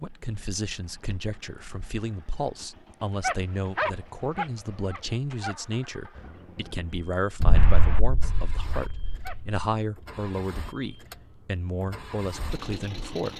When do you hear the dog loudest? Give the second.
4 s.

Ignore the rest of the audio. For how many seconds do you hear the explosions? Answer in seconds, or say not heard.
2 s.